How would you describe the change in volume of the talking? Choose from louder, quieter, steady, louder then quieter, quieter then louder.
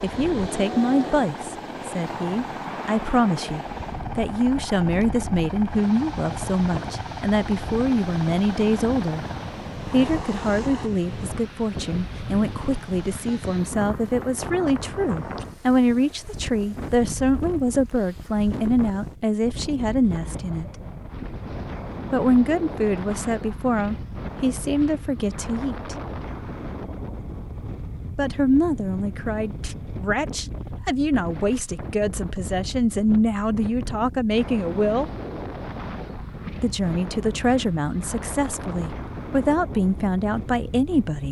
steady.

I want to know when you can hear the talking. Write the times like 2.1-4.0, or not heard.
0.0-9.2, 9.9-20.7, 22.1-25.9, 28.1-35.1, 36.6-41.2.